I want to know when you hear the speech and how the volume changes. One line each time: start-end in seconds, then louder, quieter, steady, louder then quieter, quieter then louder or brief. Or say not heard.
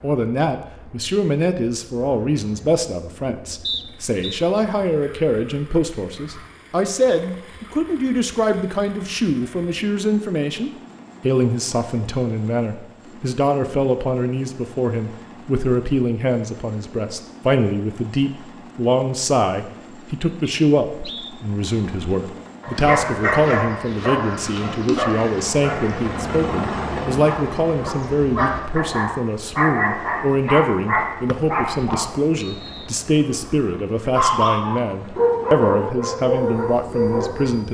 0.0-37.6 steady.